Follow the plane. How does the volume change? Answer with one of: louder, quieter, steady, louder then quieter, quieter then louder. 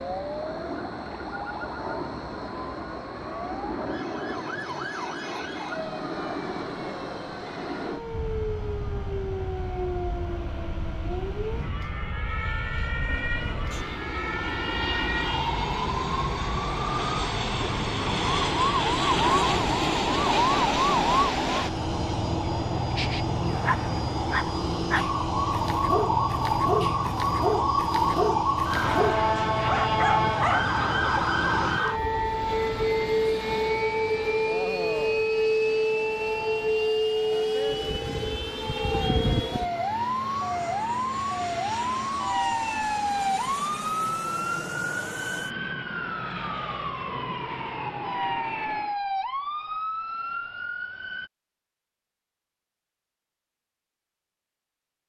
louder then quieter.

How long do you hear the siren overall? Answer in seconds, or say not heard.
51 s.